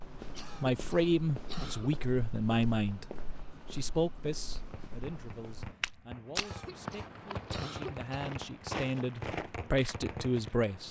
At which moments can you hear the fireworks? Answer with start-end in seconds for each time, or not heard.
4.5-10.5.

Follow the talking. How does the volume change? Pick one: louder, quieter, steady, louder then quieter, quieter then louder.
quieter then louder.